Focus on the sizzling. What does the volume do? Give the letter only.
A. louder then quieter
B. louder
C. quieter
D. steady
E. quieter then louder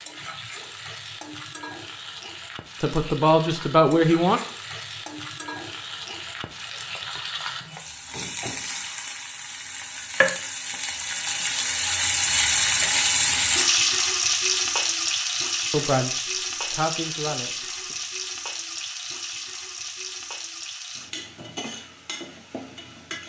A.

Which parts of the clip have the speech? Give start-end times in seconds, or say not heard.
2.8-4.4, 15.7-17.9.